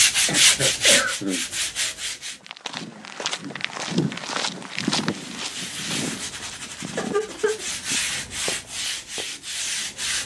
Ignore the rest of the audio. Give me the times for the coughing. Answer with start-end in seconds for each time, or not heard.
0.2-1.4, 6.7-7.7.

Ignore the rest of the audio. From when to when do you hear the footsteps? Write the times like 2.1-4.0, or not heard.
2.2-9.3.